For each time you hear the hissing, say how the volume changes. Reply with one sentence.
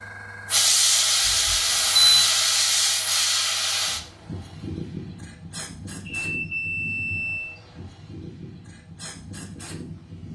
You can hear the hissing from 0.5 to 10.3 s, getting quieter.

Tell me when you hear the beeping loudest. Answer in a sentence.
The volume of the beeping peaks at 2 seconds.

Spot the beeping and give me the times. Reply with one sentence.
You can hear the beeping from 1.2 to 2.2 s and from 6.0 to 7.5 s.